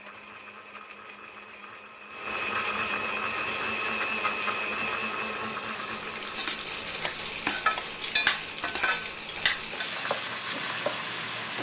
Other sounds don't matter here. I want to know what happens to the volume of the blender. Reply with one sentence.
The volume of the blender goes up, then down.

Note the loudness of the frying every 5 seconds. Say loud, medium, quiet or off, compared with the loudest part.
quiet, loud, loud.